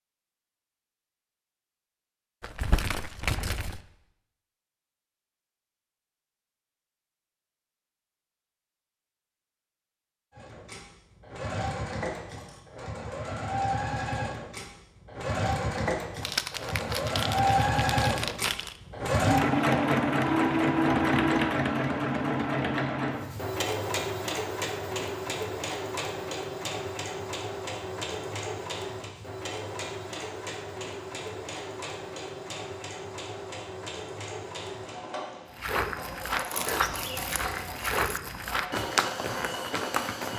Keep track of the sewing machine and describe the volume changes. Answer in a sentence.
The volume of the sewing machine goes up, then down.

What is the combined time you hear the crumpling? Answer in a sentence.
The crumpling can be heard for 6 seconds in total.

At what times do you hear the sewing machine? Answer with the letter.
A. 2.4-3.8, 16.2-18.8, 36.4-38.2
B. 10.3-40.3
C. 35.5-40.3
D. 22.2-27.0
B.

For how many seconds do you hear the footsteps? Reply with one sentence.
The footsteps can be heard for 5 seconds in total.